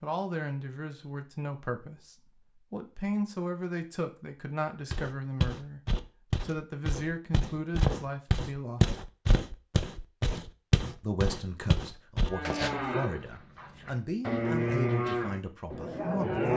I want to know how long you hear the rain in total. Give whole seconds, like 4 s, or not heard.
not heard.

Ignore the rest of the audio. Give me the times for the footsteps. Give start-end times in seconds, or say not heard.
4.9-12.8.